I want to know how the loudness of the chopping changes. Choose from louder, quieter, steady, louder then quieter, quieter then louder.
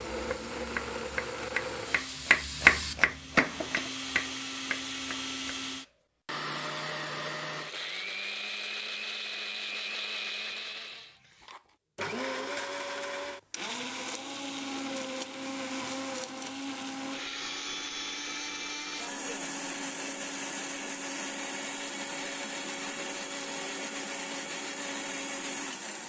louder then quieter.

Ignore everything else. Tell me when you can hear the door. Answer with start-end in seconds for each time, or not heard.
not heard.